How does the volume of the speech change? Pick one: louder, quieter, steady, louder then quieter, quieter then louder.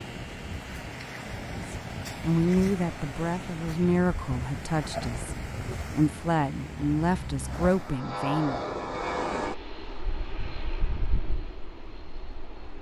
quieter then louder.